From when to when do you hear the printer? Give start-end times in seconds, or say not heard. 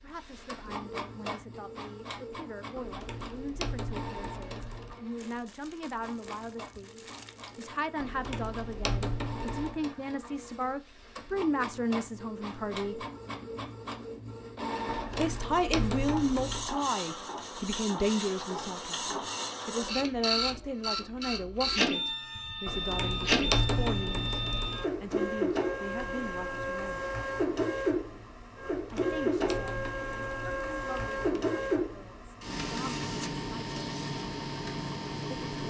0.0-35.6.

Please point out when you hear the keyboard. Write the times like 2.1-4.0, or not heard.
2.8-5.0, 8.0-9.8, 14.8-16.6, 22.6-24.9, 28.7-31.4.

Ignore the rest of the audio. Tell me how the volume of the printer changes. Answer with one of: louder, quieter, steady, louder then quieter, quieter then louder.
louder.